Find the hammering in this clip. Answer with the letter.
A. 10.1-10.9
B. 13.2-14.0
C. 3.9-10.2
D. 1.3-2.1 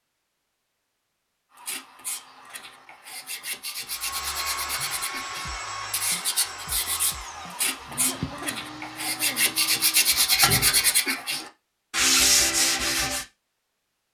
A.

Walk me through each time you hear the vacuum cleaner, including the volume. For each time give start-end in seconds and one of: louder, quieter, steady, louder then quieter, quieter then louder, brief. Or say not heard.
3.9-10.2 quieter.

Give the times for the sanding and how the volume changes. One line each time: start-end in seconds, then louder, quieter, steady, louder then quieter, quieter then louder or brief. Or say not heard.
1.6-13.2 louder.